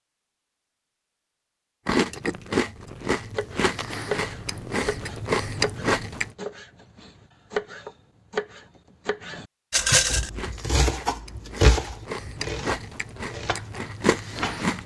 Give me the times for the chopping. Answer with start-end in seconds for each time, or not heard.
3.4-14.7.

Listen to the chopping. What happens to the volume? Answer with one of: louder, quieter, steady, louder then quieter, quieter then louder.
louder then quieter.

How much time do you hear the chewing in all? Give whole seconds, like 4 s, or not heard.
9 s.